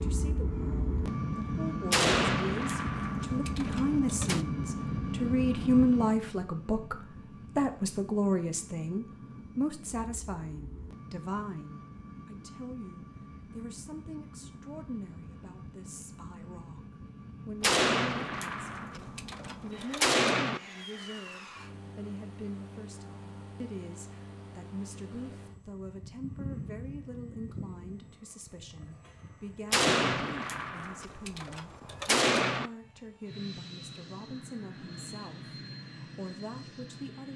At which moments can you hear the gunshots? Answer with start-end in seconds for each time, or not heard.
1.9-4.5, 17.6-20.6, 29.7-32.7.